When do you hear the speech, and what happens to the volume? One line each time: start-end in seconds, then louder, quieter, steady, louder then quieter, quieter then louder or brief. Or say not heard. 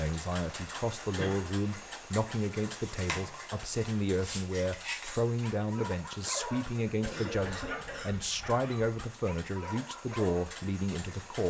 0.0-11.4 steady.